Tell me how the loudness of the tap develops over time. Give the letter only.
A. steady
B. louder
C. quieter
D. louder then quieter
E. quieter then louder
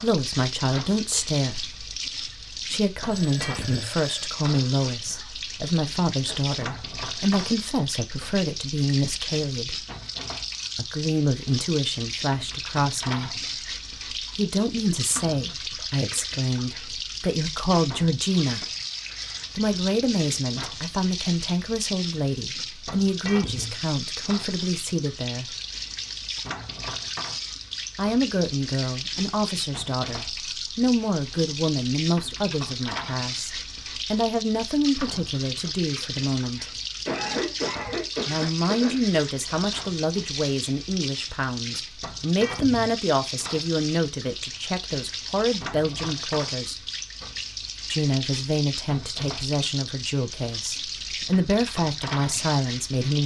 A.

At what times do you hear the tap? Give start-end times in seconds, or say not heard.
0.0-53.2.